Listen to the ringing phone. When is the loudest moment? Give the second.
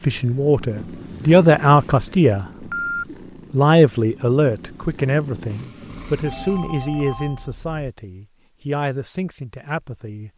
3 s.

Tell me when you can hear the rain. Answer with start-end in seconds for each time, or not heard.
not heard.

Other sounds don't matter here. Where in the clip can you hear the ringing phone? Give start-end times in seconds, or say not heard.
2.5-3.0, 6.1-7.8.